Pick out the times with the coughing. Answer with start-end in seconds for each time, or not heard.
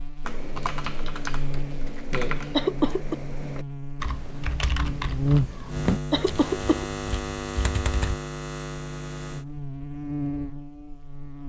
2.5-3.1, 6.1-6.8.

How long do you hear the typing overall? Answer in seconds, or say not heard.
8 s.